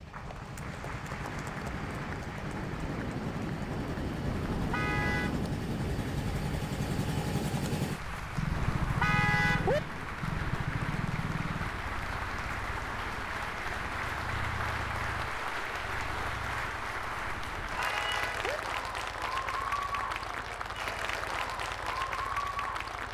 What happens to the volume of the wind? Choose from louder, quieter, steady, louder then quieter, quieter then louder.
louder then quieter.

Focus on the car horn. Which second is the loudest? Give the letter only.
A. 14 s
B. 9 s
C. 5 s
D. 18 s
B.